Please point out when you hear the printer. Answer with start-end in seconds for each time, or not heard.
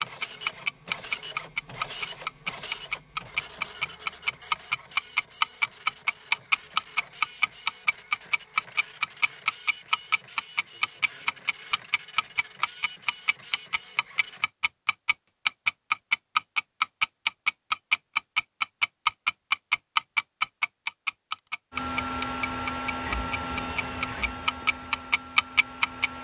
0.0-14.5, 21.7-26.1.